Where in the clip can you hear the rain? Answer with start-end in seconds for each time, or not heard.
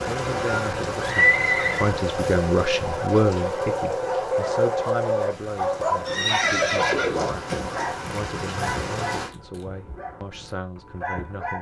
0.0-9.3.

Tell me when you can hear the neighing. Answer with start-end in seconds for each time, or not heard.
1.0-1.9, 6.0-7.8.